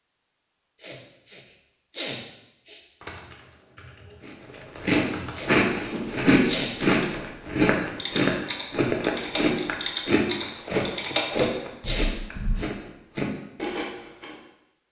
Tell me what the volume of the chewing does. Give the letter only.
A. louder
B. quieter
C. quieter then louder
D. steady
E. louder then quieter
B.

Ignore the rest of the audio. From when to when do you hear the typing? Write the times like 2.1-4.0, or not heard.
3.0-12.6.